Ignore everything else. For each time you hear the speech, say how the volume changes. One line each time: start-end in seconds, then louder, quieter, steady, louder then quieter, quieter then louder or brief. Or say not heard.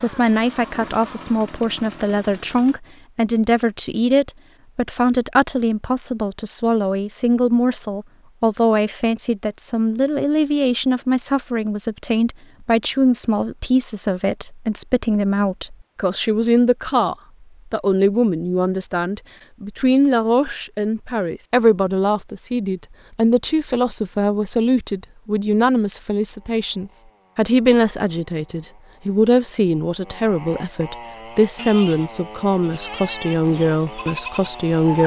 0.0-35.0 steady.